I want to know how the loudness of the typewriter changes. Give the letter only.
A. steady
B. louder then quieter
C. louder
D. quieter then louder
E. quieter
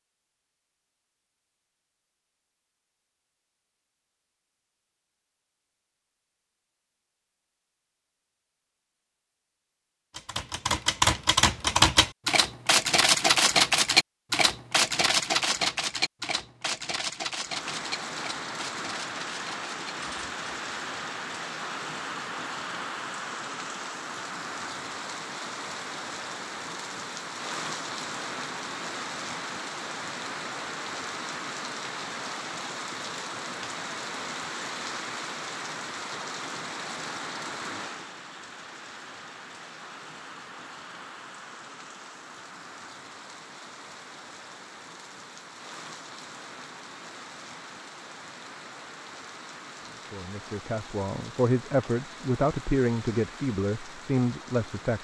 E.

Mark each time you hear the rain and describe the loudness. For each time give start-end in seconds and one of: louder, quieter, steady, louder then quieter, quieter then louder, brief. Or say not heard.
17.4-55.0 quieter.